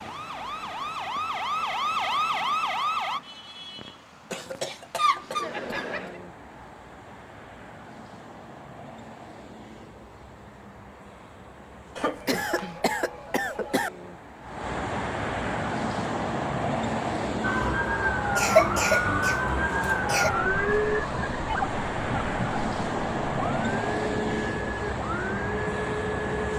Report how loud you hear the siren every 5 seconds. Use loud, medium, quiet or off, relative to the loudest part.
loud, off, off, loud, loud, medium.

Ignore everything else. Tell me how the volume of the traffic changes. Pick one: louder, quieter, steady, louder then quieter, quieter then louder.
louder.